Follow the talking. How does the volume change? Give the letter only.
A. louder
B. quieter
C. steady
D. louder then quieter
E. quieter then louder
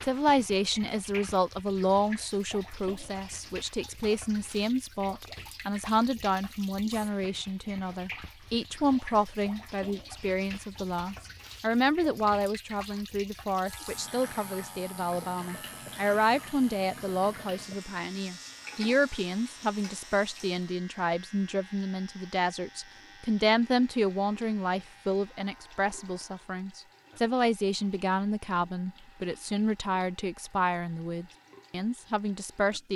C.